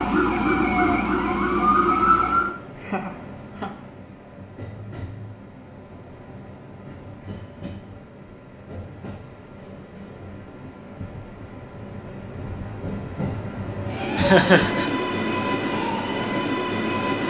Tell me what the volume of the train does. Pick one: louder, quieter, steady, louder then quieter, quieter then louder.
louder.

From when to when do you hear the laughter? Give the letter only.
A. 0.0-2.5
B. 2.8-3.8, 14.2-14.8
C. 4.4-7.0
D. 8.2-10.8
B.